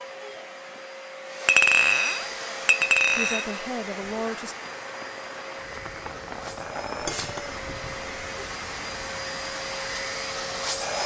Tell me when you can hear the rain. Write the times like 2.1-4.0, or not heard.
2.3-11.0.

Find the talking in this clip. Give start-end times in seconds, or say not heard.
3.1-4.5.